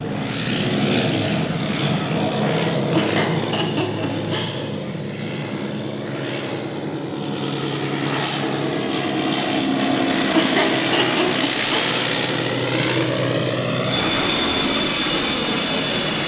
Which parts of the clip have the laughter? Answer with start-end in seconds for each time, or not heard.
2.9-4.7, 10.3-11.9.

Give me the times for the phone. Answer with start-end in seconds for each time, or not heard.
not heard.